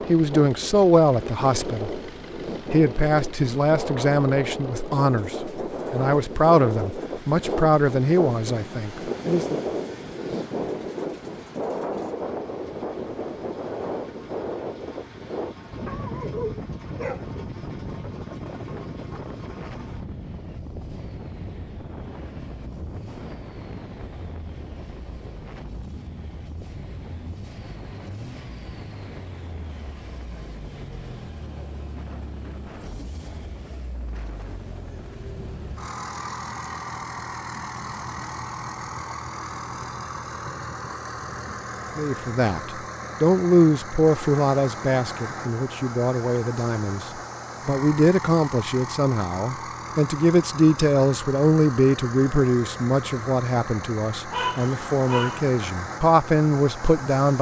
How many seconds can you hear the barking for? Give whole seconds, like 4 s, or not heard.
3 s.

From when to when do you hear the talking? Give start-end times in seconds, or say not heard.
0.1-2.0, 2.7-9.6, 42.0-57.3.